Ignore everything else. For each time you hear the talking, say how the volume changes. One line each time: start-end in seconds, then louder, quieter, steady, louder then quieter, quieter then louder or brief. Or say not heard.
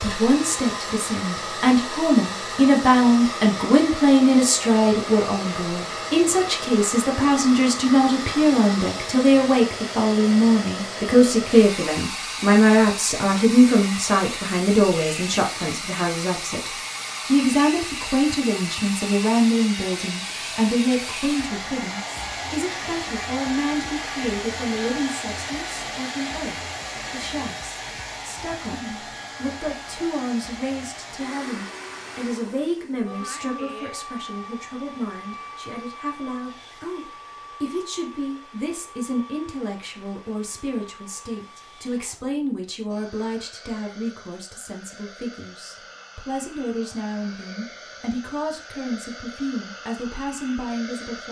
0.0-51.2 quieter.